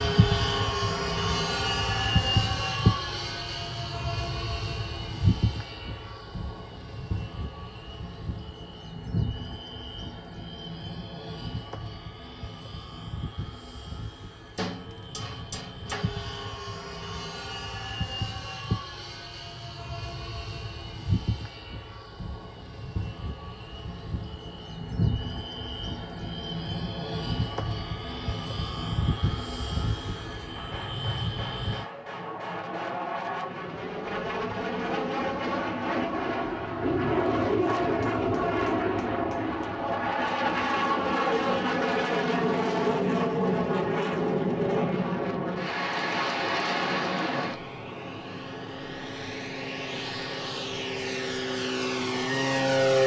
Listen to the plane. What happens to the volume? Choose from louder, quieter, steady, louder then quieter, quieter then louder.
quieter then louder.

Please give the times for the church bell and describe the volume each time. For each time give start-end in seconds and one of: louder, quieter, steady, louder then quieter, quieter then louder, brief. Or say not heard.
not heard.